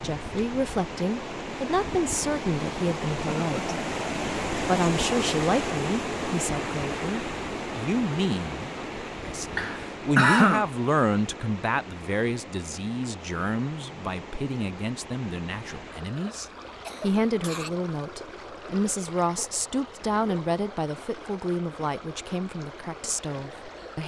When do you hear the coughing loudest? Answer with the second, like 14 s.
10 s.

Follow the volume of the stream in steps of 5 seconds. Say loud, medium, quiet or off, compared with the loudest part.
loud, loud, medium, medium, medium.